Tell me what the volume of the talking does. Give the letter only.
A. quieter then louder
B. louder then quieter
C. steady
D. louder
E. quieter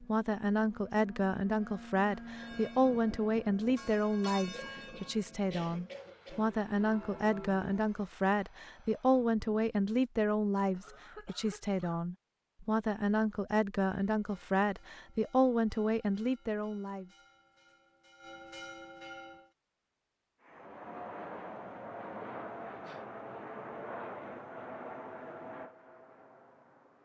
C.